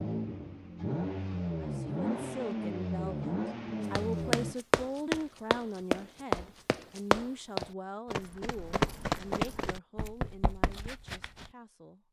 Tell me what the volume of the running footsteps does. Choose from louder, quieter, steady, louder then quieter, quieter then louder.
quieter.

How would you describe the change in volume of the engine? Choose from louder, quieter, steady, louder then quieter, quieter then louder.
steady.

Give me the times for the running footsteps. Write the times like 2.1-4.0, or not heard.
4.0-11.5.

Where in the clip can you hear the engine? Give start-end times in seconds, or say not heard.
0.0-4.5.